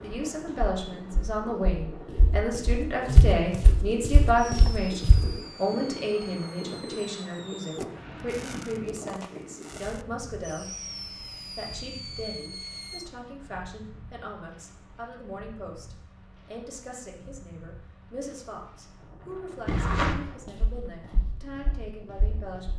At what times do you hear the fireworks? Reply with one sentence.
The fireworks can be heard from 4.3 to 13.1 s.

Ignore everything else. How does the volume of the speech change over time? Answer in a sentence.
The loudness of the speech goes down.